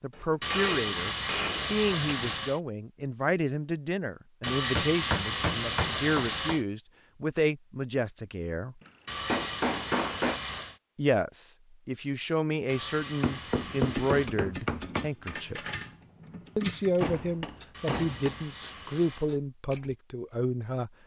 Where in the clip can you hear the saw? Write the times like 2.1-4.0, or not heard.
0.4-2.6, 4.4-6.7, 9.1-10.8, 12.7-14.3, 17.7-19.3.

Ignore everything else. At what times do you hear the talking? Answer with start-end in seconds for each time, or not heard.
0.0-8.8, 10.9-15.6, 16.6-20.9.